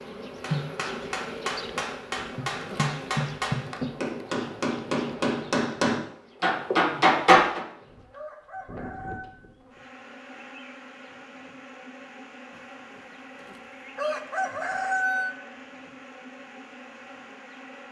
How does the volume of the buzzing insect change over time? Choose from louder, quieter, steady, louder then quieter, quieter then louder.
quieter.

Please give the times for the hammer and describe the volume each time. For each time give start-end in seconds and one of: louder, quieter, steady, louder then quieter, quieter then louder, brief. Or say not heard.
0.4-7.6 louder.